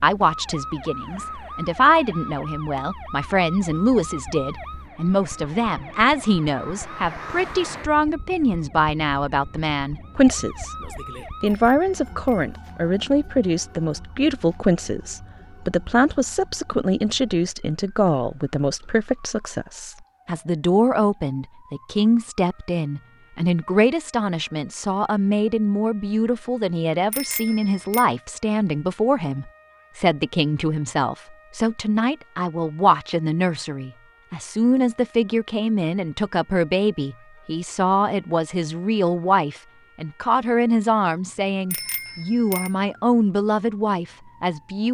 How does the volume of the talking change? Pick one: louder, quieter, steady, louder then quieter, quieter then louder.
steady.